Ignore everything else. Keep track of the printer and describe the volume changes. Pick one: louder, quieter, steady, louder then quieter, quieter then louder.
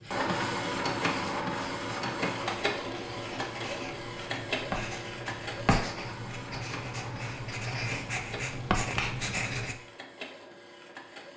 quieter.